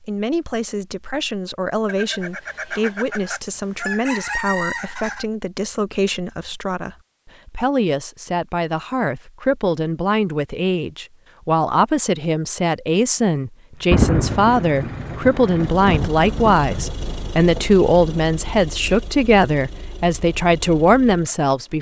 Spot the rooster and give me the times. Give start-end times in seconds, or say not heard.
1.9-5.2.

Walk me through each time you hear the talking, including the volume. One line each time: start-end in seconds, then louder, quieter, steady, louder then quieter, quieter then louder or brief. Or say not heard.
0.0-21.7 louder.